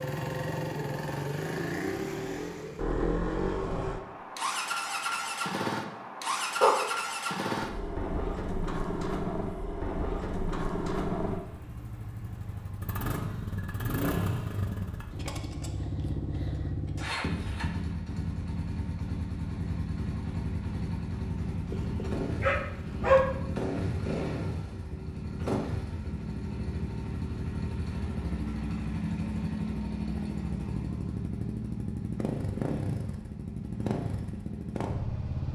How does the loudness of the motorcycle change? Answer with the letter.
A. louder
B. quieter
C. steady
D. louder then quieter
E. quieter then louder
C.